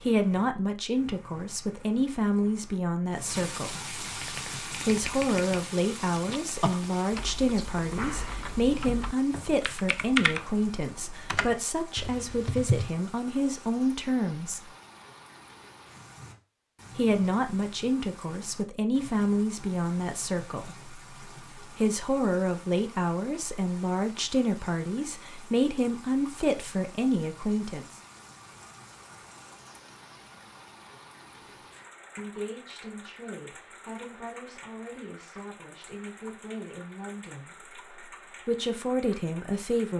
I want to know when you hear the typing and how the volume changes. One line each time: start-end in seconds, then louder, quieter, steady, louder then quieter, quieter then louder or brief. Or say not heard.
4.2-12.9 louder then quieter.